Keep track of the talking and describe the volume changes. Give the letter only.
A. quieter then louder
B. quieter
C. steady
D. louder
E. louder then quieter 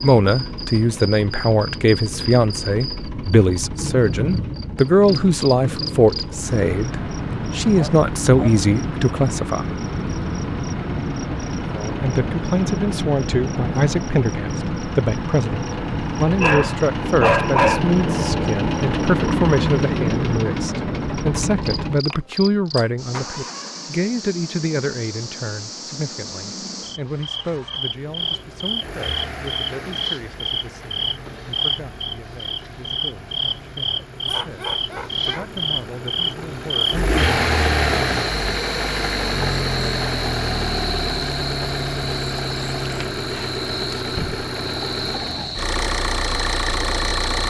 B.